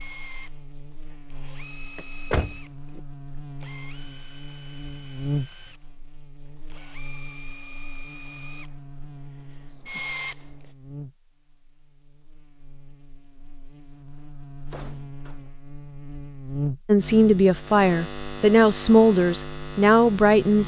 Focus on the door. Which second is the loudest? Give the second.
2 s.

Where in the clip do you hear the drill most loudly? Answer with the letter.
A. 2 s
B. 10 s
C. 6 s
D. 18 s
B.